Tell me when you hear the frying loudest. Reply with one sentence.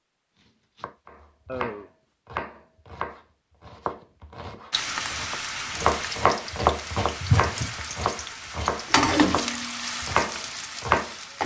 The loudest moment of the frying is at 9 seconds.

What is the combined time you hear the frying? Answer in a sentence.
The frying can be heard for 7 seconds in total.